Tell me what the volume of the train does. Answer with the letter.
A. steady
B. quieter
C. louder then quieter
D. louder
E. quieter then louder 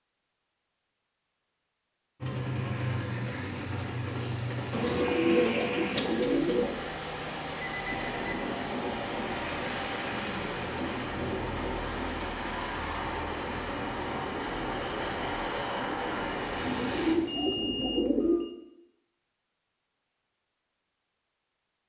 A.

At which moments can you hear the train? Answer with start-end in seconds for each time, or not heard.
2.2-17.1.